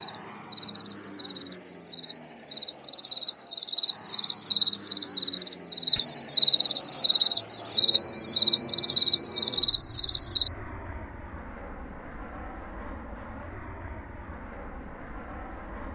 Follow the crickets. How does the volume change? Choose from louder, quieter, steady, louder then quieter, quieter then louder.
louder.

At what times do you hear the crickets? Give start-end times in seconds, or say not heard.
0.0-10.5.